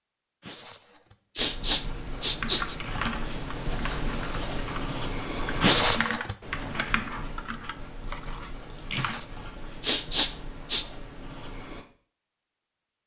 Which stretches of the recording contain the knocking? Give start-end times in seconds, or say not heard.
not heard.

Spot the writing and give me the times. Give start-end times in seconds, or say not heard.
1.4-11.8.